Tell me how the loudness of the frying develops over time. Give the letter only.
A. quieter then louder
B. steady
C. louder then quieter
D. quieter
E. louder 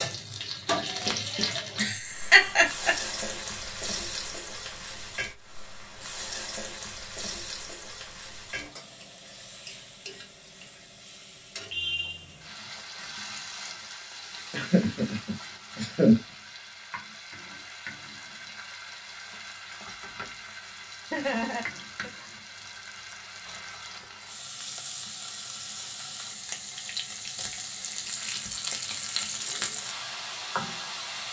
A.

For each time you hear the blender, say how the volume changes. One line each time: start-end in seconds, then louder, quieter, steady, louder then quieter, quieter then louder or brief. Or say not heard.
not heard.